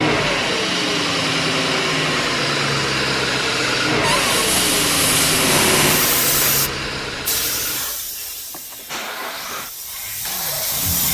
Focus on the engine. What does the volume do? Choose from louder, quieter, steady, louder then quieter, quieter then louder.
quieter.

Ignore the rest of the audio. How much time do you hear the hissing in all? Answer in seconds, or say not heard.
7 s.